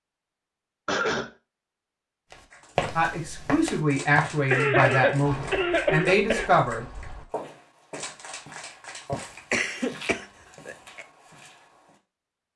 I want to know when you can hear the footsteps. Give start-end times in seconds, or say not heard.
2.3-11.9.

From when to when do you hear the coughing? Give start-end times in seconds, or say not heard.
0.8-1.3, 4.5-6.5, 9.1-11.1.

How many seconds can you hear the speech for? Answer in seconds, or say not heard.
4 s.